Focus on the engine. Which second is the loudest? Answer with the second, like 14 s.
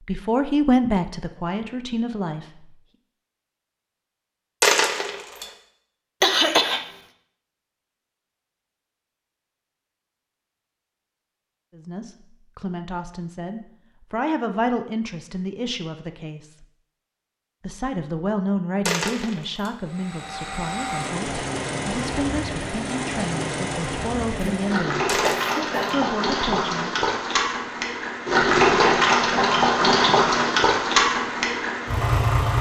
29 s.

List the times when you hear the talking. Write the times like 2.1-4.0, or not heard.
0.0-2.8, 11.8-16.6, 17.6-25.2, 25.9-26.9.